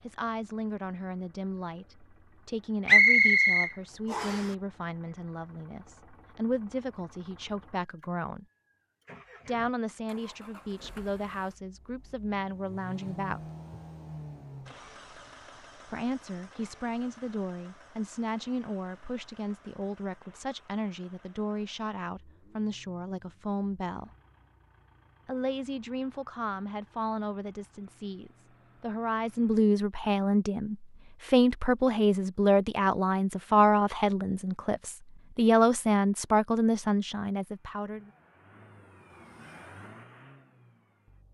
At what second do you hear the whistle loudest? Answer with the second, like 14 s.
3 s.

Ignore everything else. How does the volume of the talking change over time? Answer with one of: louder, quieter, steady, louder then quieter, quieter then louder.
louder.